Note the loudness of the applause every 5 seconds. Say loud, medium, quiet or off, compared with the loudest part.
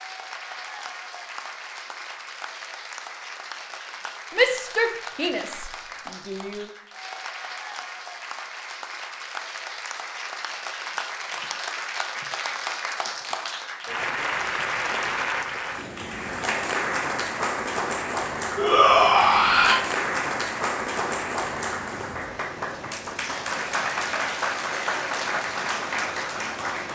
medium, medium, loud, loud, loud, loud.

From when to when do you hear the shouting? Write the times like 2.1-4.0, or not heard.
4.3-6.7, 18.6-19.8.